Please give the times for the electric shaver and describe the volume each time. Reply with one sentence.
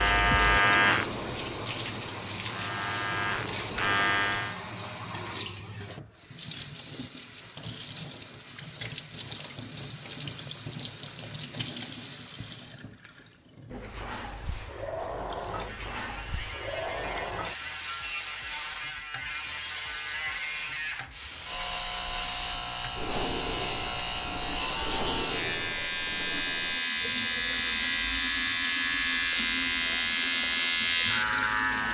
The electric shaver can be heard from 0.0 to 4.6 s, getting quieter then louder; and from 15.4 to 31.8 s, getting louder.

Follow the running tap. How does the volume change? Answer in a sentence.
The loudness of the running tap stays about the same.